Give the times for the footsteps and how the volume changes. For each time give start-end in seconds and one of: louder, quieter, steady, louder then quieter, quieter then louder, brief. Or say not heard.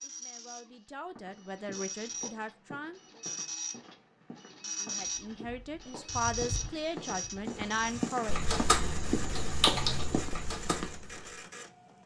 1.1-11.2 louder.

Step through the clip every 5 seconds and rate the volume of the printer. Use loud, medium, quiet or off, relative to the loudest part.
loud, loud, medium.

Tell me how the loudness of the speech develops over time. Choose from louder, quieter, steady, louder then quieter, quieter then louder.
louder.